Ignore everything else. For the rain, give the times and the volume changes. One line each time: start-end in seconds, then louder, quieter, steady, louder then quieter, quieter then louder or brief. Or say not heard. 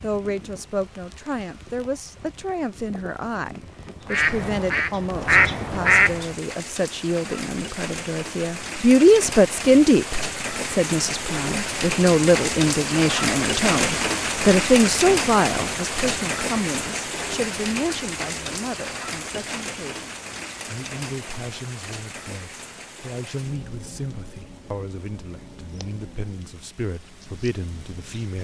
0.0-28.3 louder then quieter.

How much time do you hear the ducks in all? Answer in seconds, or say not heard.
2 s.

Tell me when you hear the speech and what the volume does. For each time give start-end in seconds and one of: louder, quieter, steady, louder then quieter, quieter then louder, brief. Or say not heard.
0.0-28.3 louder then quieter.